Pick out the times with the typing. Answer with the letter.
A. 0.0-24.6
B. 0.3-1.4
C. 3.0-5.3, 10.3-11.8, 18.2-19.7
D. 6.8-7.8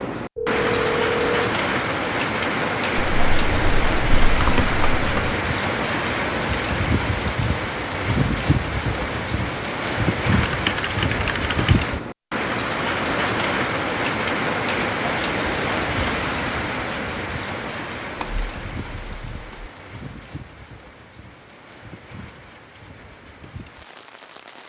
C.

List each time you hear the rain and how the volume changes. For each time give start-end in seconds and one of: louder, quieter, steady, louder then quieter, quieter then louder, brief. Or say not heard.
0.0-24.6 quieter.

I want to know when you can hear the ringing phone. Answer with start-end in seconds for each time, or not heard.
0.3-1.4.